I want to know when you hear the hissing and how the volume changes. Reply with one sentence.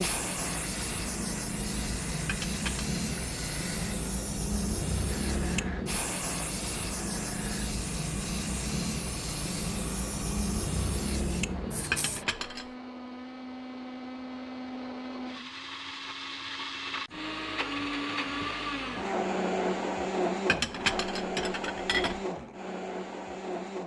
The hissing can be heard from 0.0 to 12.2 s, at a steady volume.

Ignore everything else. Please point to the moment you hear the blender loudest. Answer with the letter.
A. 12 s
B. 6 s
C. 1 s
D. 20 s
D.